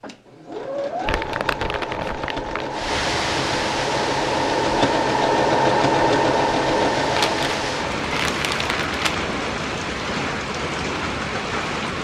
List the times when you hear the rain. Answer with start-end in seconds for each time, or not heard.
2.7-11.9.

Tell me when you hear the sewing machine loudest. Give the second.
6 s.